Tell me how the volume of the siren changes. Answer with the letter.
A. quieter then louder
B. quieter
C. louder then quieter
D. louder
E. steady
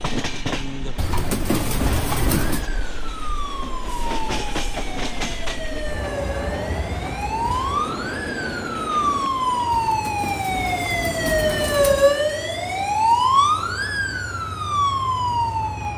D.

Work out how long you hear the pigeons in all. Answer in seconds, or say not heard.
4 s.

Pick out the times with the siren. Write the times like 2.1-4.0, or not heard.
2.4-15.9.